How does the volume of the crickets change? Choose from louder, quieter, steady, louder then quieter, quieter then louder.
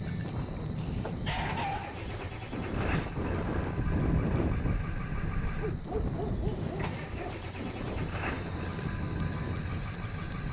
quieter then louder.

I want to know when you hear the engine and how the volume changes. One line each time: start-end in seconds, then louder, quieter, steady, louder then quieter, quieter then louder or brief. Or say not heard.
0.0-10.4 steady.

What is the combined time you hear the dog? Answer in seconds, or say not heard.
3 s.